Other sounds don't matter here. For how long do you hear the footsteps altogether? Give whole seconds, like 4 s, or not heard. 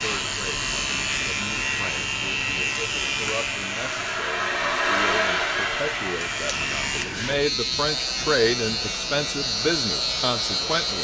not heard.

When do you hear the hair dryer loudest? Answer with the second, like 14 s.
5 s.